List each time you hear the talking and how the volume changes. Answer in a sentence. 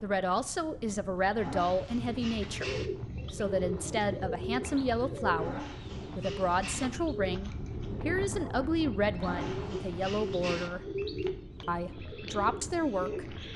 The talking can be heard from 0.0 to 10.8 s, at a steady volume; and briefly from 11.7 to 13.3 s.